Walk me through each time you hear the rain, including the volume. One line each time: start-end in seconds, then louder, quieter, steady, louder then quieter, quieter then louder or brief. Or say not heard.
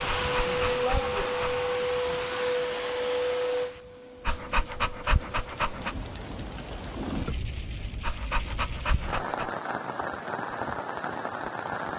0.0-11.9 quieter then louder.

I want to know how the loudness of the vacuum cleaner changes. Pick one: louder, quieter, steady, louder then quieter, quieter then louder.
quieter.